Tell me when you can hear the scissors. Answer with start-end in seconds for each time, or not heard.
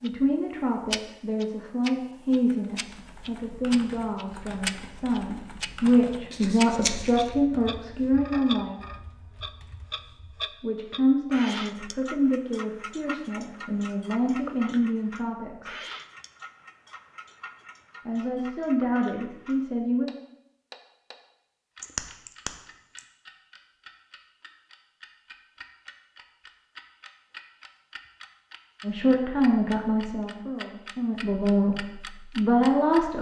6.3-7.3, 21.8-23.0.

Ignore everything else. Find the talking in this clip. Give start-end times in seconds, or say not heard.
0.0-8.8, 10.6-15.8, 18.1-20.1, 28.8-33.1.